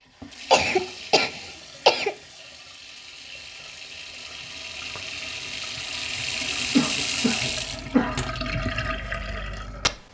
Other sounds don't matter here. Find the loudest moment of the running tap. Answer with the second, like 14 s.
7 s.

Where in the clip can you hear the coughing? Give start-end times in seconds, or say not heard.
0.5-2.1, 6.6-8.3.